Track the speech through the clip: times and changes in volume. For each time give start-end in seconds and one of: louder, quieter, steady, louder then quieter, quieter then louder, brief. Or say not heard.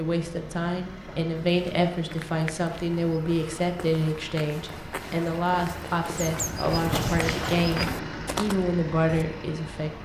0.0-10.0 steady.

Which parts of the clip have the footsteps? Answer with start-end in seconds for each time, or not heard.
1.4-9.2.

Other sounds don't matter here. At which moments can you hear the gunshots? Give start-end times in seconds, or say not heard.
6.9-7.7.